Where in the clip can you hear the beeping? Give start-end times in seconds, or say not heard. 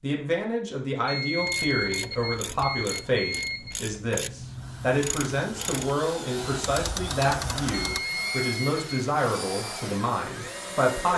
1.1-3.8, 7.7-9.0.